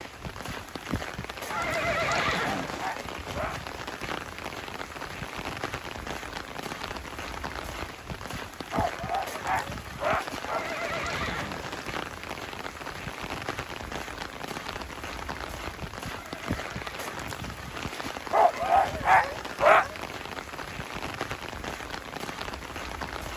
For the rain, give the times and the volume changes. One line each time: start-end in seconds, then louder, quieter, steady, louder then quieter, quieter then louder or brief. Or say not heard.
0.0-23.3 steady.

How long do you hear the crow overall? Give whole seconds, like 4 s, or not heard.
not heard.